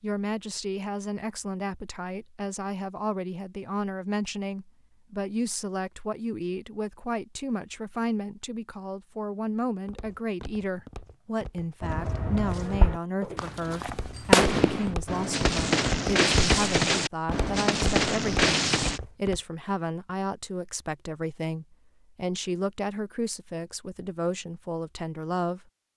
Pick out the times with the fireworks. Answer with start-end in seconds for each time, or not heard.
11.8-19.0.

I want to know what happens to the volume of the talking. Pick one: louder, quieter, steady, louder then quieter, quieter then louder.
steady.